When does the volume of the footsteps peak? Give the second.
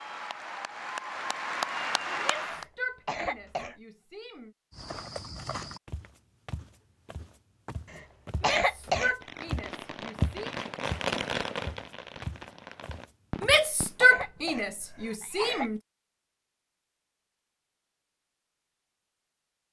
10 s.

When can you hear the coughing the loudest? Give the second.
9 s.